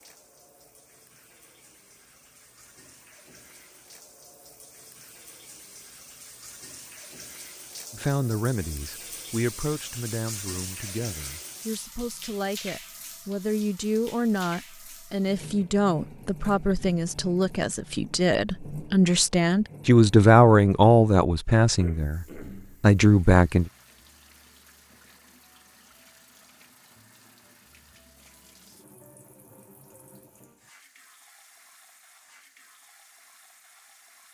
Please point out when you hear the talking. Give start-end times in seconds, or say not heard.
7.9-23.7.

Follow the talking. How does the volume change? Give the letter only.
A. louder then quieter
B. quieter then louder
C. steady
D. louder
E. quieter
D.